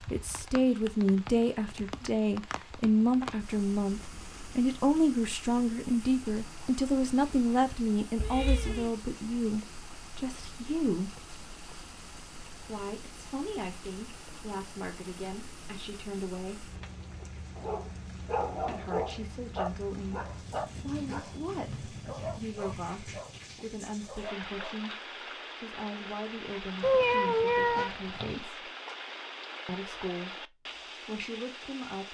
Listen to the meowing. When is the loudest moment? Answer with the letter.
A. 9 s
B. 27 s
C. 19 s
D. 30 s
B.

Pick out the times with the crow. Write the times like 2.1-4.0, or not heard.
not heard.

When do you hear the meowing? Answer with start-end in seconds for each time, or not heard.
8.2-8.9, 26.8-28.4.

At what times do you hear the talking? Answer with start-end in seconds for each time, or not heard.
0.1-11.2, 12.7-16.8, 18.6-28.7, 29.6-32.0.